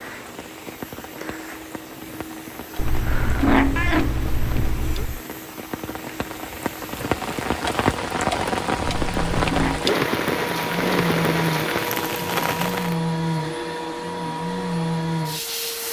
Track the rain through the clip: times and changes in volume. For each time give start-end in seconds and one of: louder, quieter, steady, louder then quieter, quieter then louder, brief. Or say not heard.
0.0-12.9 louder.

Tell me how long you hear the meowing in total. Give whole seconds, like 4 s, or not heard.
3 s.